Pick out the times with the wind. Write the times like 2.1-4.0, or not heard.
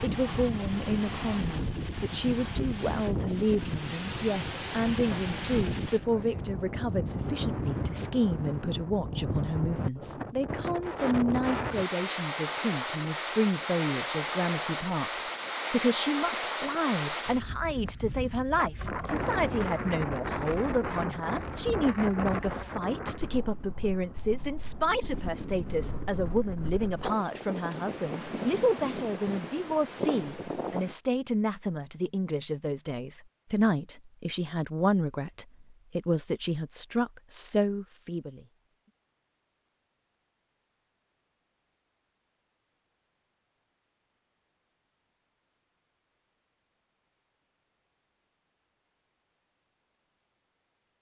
0.0-30.9.